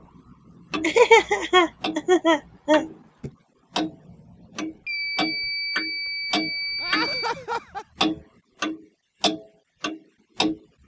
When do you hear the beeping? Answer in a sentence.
You can hear the beeping from 4.8 to 7.3 s.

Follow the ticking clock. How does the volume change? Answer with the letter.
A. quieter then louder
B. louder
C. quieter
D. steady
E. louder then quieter
B.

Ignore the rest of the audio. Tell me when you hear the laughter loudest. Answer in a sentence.
The loudest moment of the laughter is at 1 second.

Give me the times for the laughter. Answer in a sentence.
You can hear the laughter from 0.8 to 3.3 s and from 6.8 to 7.8 s.